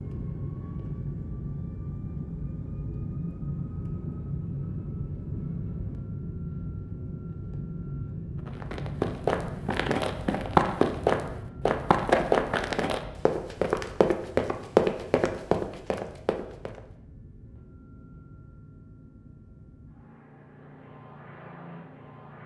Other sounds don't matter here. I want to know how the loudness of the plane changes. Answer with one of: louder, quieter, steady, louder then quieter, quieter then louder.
quieter.